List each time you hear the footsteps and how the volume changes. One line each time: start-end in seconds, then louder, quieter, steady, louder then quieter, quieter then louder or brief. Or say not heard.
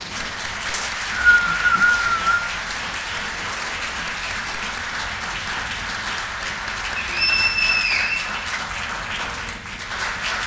not heard.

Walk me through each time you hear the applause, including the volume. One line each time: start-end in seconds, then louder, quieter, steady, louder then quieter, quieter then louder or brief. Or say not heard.
0.0-10.4 steady.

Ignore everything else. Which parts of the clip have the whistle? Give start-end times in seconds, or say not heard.
0.7-2.5, 7.0-8.3.